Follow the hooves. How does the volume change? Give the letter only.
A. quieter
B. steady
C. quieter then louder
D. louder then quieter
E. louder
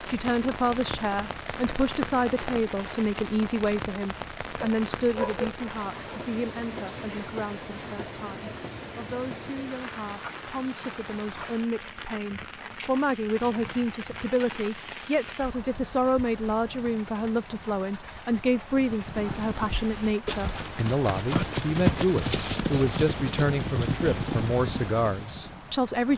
D.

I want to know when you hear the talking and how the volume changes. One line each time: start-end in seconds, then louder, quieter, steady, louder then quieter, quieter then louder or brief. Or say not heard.
0.1-26.1 quieter then louder.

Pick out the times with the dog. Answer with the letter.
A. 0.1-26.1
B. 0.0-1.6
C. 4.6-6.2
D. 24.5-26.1
C.